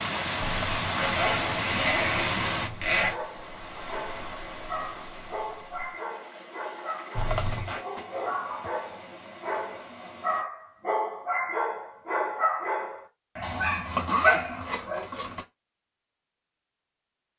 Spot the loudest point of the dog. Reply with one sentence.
The volume of the dog peaks at 14 seconds.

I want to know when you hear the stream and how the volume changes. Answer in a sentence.
The stream can be heard from 0.0 to 10.4 s, getting quieter.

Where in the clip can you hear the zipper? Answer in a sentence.
You can hear the zipper from 0.4 to 3.2 s, from 7.2 to 7.8 s and from 13.4 to 15.4 s.